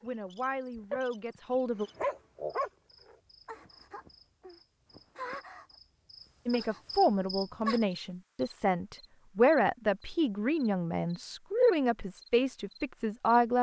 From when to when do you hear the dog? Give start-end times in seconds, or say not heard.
1.9-3.1.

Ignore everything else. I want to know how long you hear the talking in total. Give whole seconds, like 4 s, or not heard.
9 s.